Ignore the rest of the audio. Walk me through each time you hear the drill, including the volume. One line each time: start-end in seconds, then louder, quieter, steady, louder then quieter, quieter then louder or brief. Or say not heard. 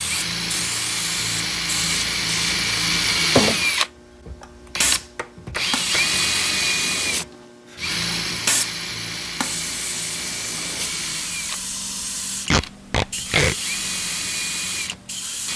0.0-15.5 quieter.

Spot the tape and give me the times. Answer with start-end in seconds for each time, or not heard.
12.5-13.6.